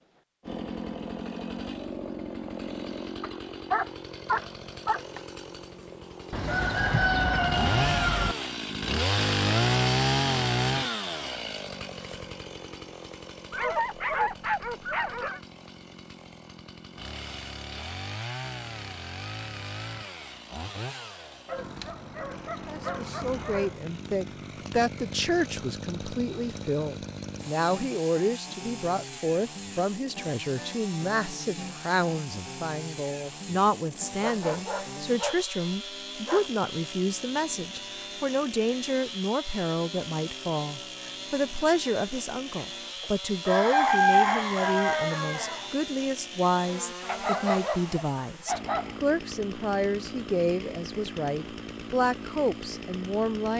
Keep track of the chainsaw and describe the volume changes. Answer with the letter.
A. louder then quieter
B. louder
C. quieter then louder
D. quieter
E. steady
D.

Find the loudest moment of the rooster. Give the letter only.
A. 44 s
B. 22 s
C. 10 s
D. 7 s
A.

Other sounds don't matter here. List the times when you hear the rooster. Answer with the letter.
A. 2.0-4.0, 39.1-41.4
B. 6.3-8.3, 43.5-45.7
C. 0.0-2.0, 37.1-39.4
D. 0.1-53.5
B.